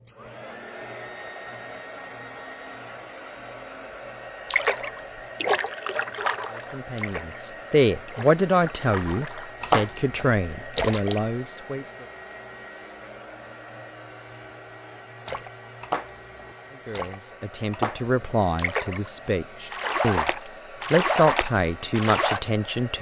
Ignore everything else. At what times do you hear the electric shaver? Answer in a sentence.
You can't hear the electric shaver here.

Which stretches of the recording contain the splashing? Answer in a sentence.
You can hear the splashing from 4.5 to 11.2 s, from 15.2 to 19.1 s and from 19.7 to 22.4 s.